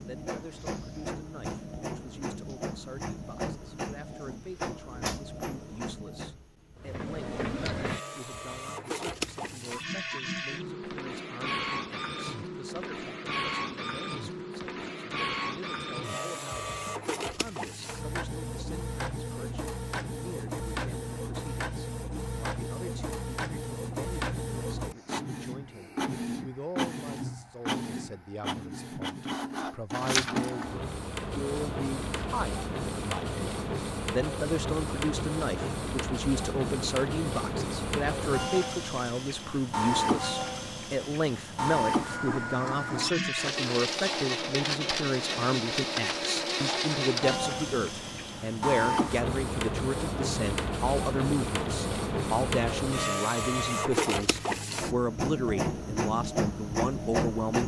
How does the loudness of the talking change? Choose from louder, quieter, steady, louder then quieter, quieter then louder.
louder.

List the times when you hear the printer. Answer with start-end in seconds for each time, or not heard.
0.0-57.6.